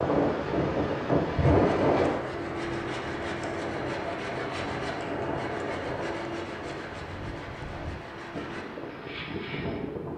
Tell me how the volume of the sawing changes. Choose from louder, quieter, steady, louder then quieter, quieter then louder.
quieter.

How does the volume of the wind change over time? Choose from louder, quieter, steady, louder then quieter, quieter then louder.
quieter.